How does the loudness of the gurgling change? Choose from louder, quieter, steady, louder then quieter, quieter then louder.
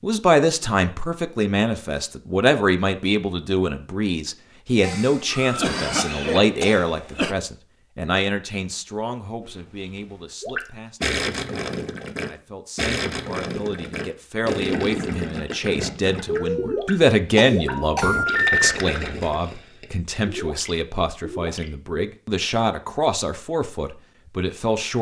quieter.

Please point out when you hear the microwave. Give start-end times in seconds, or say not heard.
not heard.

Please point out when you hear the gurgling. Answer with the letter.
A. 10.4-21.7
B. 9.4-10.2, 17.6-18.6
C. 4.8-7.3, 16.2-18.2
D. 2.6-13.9
A.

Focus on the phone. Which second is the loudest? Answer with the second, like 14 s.
18 s.